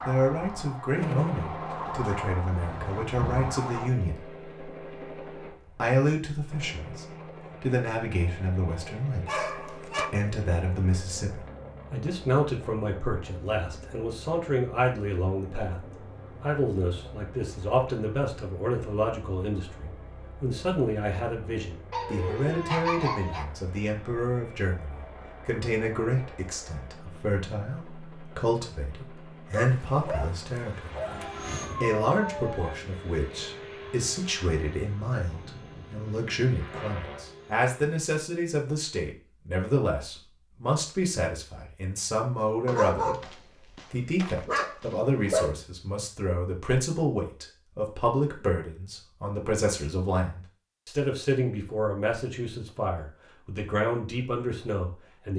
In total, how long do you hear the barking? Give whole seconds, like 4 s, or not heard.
7 s.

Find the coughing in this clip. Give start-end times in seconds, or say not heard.
not heard.